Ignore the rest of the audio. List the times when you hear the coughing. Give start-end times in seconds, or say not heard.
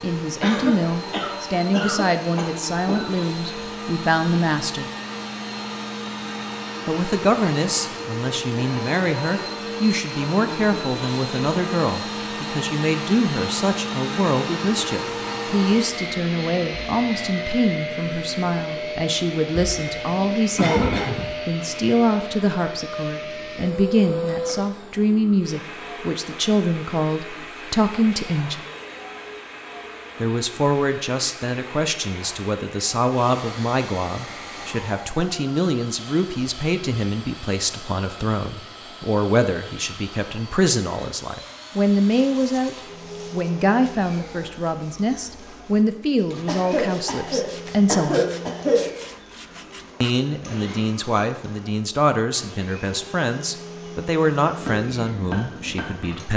0.4-3.1, 20.6-21.4, 46.5-48.9.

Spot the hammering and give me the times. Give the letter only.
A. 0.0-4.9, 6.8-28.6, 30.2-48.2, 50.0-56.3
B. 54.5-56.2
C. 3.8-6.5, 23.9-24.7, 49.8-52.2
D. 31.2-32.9
B.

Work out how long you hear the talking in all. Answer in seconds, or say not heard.
51 s.